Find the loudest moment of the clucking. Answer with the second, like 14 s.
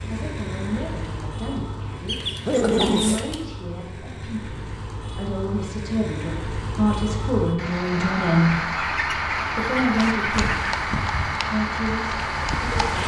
3 s.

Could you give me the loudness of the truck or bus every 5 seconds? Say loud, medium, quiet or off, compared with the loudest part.
medium, loud, loud.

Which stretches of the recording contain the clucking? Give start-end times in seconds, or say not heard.
2.0-3.5, 8.6-10.7.